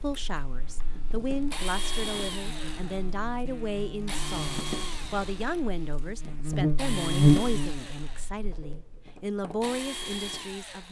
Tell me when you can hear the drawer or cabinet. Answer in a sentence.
The drawer or cabinet can't be heard in this clip.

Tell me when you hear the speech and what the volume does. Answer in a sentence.
You can hear the speech from 0.0 to 10.8 s, at a steady volume.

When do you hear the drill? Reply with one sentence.
The drill can be heard from 0.0 to 10.8 s.